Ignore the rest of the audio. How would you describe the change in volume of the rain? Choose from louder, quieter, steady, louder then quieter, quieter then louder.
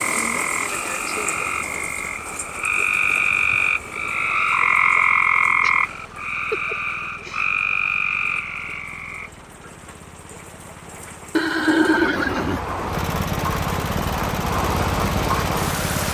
quieter then louder.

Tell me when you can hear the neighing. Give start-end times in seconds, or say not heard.
11.3-12.6.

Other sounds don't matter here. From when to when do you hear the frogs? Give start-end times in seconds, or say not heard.
0.0-9.3.